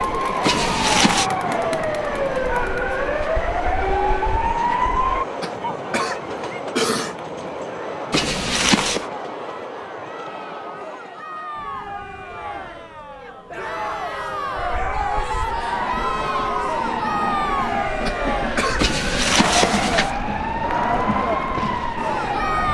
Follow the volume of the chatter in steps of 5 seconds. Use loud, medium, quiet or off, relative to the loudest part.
loud, medium, medium, loud, loud.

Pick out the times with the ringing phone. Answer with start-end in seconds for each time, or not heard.
0.4-1.3, 8.1-9.1, 18.8-20.1.